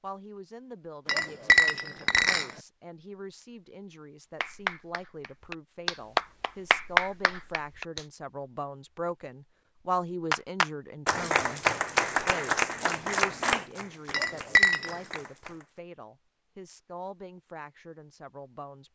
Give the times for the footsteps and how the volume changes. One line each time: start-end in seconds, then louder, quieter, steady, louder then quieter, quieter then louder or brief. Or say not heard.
not heard.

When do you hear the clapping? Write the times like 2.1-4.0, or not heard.
4.4-8.1, 10.3-15.7.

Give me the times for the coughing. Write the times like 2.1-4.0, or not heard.
not heard.